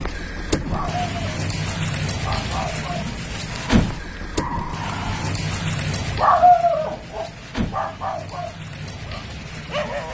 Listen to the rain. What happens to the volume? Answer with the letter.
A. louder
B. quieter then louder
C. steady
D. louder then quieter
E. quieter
E.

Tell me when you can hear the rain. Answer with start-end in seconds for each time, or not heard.
0.0-10.0.